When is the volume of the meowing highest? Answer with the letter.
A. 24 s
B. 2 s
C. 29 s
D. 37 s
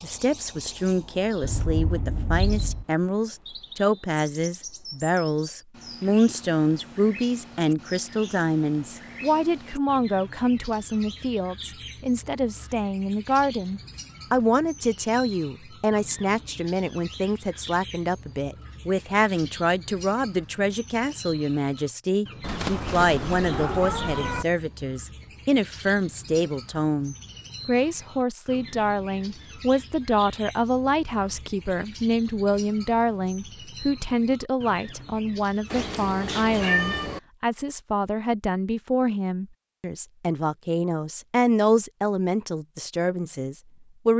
D.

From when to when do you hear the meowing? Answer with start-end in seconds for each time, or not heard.
1.4-2.9, 22.4-24.4, 35.7-37.2.